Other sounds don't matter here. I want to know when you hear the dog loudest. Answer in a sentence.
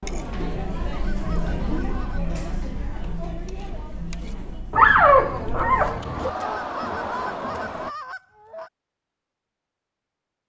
The loudest moment of the dog is at 5 seconds.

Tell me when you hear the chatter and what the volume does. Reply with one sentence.
You can hear the chatter from 0.0 to 8.0 s, getting quieter then louder.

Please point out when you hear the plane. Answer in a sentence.
You can't hear the plane here.